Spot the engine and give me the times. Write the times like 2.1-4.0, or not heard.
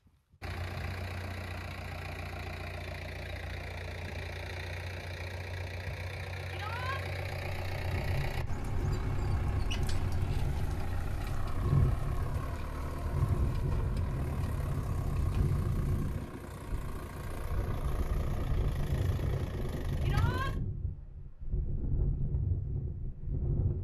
0.1-20.6.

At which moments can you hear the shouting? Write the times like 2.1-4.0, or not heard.
6.5-7.0, 20.0-20.6.